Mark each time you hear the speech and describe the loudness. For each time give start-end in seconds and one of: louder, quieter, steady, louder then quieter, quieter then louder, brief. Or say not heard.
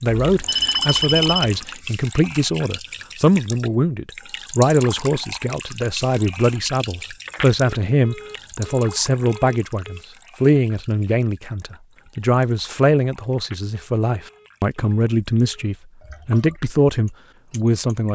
0.0-18.1 steady.